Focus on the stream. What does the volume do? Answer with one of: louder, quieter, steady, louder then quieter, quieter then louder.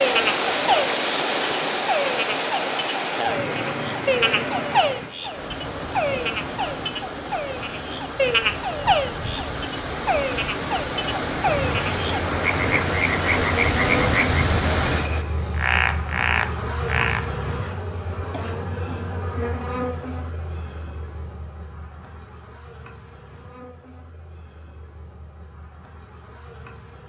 quieter then louder.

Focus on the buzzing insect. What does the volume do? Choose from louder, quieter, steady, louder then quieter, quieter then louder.
quieter.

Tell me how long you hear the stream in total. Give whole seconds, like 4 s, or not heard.
15 s.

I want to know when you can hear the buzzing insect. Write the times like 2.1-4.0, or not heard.
11.4-27.0.